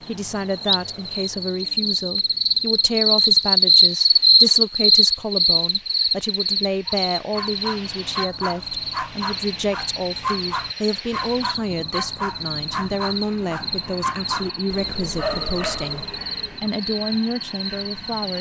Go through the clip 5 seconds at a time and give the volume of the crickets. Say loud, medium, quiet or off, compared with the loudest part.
loud, medium, quiet, quiet.